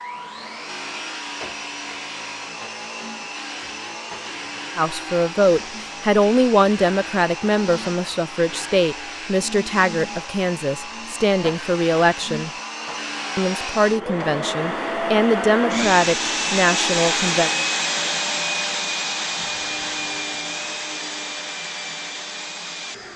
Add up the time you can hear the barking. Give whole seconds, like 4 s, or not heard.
not heard.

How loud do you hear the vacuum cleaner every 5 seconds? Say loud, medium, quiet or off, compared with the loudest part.
medium, medium, medium, loud, medium.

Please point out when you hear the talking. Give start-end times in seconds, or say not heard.
4.8-12.5, 13.3-17.5.